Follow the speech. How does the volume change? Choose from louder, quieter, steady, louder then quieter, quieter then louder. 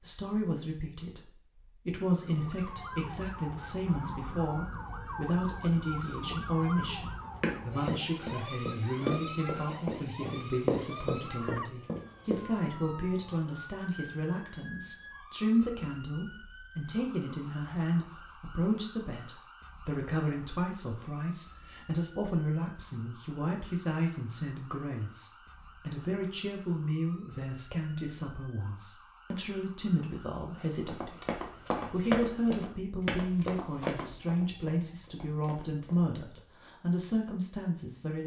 steady.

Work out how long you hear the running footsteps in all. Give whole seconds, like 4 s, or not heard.
10 s.